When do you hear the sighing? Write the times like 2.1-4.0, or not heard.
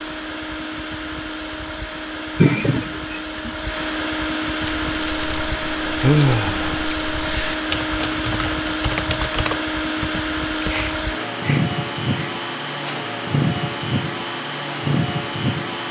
2.4-3.5, 6.0-6.8, 10.7-13.1.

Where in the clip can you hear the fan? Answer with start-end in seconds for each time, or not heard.
0.0-15.8.